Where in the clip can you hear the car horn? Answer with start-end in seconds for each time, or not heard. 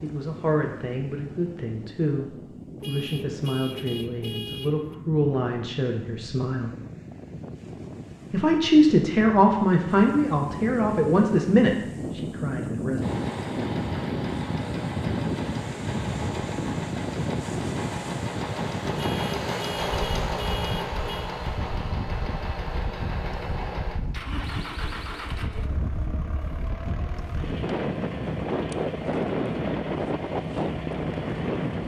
2.8-5.0, 18.9-21.3.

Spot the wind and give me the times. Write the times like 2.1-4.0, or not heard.
0.0-31.8.